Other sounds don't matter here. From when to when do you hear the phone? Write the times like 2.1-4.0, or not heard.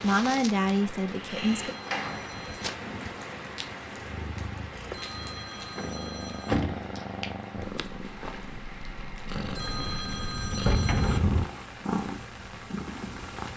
1.4-2.6, 4.9-6.6, 9.6-11.2.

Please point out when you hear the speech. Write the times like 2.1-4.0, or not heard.
0.0-1.7.